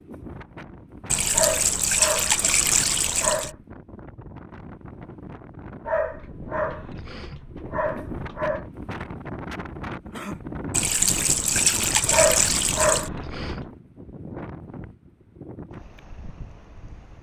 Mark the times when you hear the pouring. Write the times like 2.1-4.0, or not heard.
1.1-3.5, 10.7-13.1.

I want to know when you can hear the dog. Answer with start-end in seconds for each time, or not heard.
1.3-3.5, 5.8-8.7, 12.1-13.7.